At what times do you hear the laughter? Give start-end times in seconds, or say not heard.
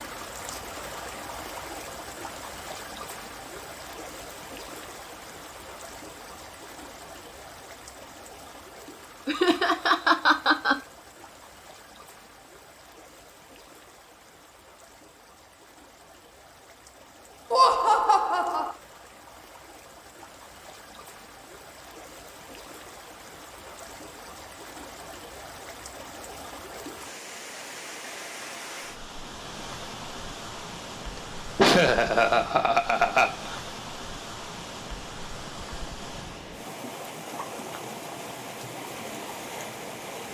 9.2-10.8, 17.5-18.8, 31.1-33.6.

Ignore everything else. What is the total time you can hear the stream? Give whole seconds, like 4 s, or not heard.
40 s.